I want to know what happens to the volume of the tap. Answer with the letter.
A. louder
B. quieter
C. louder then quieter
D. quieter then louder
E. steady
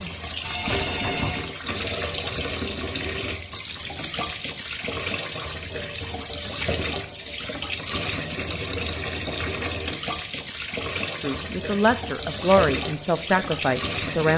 E.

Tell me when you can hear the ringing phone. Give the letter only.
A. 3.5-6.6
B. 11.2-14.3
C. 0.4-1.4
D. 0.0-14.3
C.